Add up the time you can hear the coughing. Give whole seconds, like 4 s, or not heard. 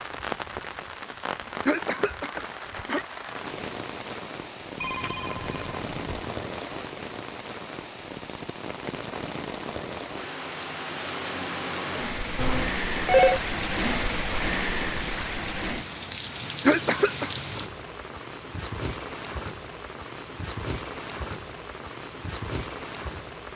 2 s.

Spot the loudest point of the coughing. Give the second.
17 s.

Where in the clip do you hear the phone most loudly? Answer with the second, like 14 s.
13 s.